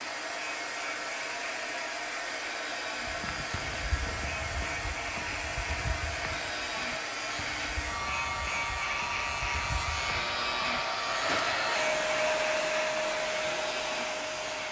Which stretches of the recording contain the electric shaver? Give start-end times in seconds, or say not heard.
0.1-14.6.